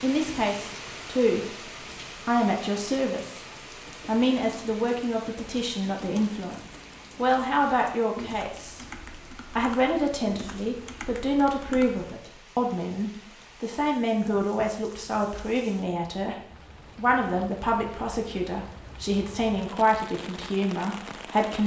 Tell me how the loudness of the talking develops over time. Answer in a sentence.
The loudness of the talking stays about the same.